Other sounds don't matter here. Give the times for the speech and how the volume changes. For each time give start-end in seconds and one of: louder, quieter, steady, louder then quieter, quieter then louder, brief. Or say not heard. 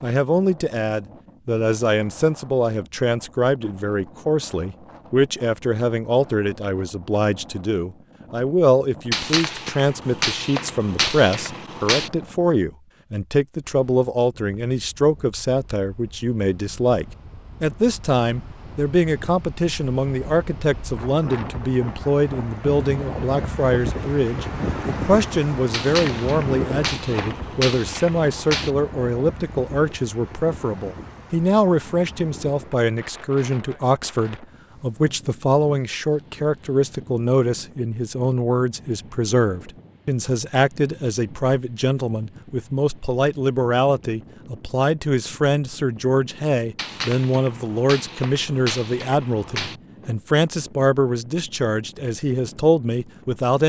0.0-53.6 steady.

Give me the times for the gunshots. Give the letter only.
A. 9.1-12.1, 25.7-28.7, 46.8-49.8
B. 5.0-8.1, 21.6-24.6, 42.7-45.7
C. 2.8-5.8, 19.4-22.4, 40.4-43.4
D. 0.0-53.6
A.